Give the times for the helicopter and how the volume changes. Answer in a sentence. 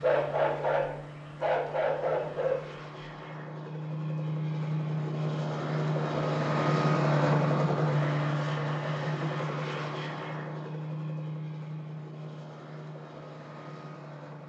The helicopter can be heard from 0.0 to 14.4 s, getting louder then quieter.